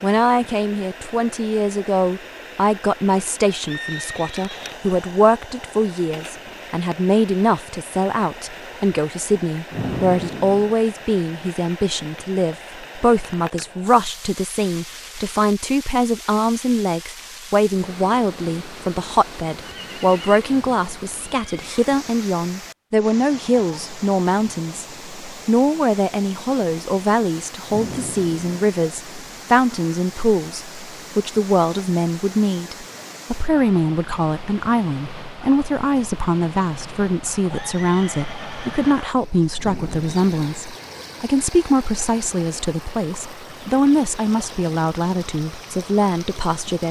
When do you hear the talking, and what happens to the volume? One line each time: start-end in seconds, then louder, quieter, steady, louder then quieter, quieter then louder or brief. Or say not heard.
0.0-46.8 steady.